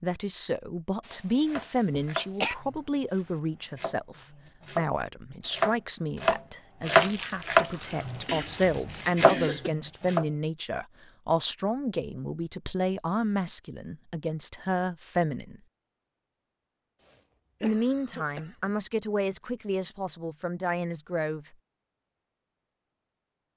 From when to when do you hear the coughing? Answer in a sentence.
You can hear the coughing from 1.1 to 2.5 s, from 8.2 to 9.7 s and from 17.0 to 18.8 s.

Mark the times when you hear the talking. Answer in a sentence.
The talking can be heard from 0.0 to 15.6 s and from 17.6 to 21.5 s.